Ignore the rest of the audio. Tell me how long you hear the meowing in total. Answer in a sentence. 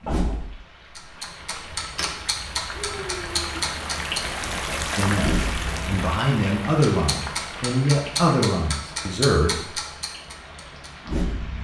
The meowing can be heard for 2 seconds in total.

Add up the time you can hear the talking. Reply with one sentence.
The talking can be heard for 5 seconds in total.